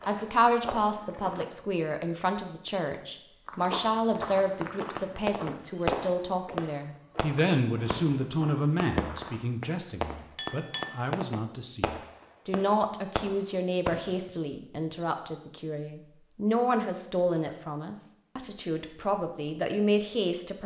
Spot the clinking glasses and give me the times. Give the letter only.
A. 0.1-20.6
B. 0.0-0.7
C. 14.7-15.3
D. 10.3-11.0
D.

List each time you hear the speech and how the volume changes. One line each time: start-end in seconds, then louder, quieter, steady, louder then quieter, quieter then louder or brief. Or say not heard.
0.1-20.6 steady.